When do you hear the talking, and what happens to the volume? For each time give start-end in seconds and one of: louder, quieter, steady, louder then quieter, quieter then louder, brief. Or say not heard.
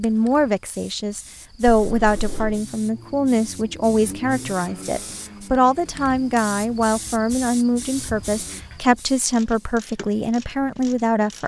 0.0-11.4 steady.